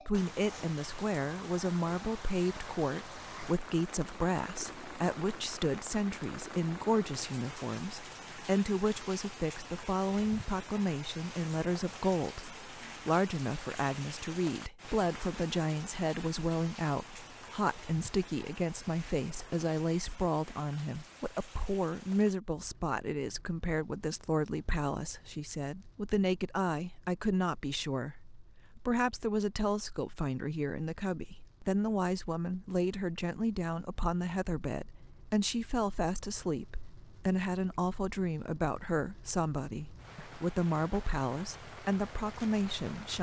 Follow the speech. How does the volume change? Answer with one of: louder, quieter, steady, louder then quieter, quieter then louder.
steady.